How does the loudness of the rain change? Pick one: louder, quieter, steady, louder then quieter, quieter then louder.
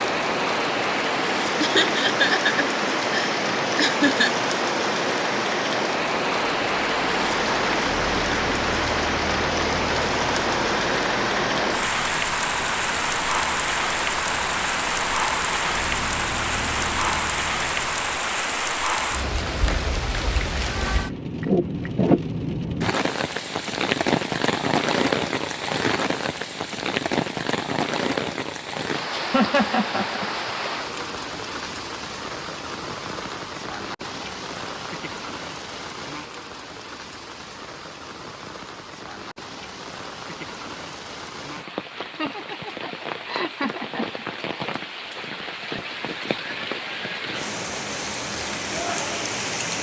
quieter.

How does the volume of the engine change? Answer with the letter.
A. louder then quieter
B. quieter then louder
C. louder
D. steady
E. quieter
D.